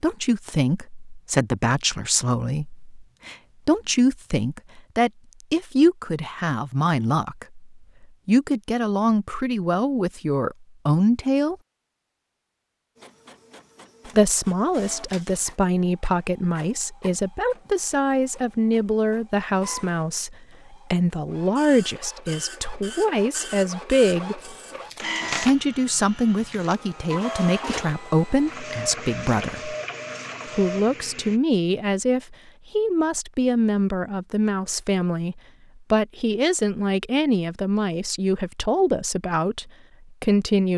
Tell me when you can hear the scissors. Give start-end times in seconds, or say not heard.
24.4-25.6.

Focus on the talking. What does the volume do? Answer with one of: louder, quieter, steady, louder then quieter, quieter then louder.
steady.